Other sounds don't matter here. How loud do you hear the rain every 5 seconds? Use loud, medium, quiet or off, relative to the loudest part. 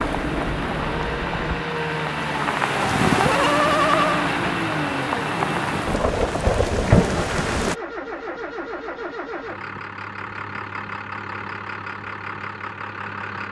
loud, loud, off.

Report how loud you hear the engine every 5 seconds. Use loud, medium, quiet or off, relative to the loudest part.
loud, loud, medium.